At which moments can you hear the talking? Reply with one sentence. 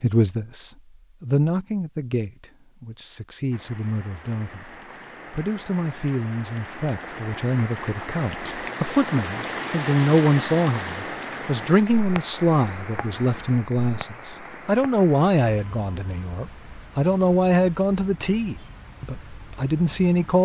You can hear the talking from 0.0 to 20.4 s.